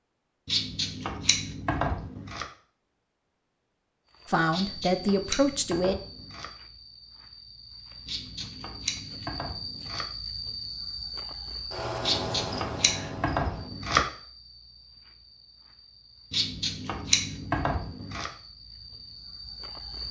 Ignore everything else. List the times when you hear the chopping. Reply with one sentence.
You can hear the chopping from 0.5 to 2.5 s, from 4.5 to 6.5 s, from 8.1 to 10.1 s, from 12.0 to 14.1 s and from 16.3 to 18.3 s.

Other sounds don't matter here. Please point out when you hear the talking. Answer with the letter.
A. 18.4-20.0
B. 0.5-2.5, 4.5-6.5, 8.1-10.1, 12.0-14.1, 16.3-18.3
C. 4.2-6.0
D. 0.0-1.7
C.